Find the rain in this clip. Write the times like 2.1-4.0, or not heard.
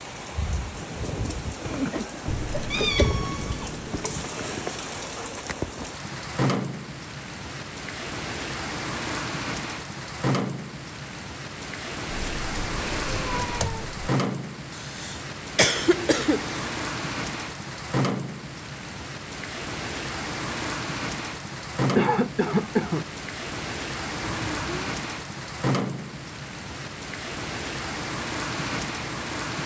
0.0-29.6.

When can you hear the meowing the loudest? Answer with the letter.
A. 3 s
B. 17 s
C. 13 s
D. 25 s
A.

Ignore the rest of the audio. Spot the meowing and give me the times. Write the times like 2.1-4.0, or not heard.
2.2-4.3, 12.1-14.1, 24.2-24.9.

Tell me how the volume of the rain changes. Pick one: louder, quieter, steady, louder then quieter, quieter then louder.
steady.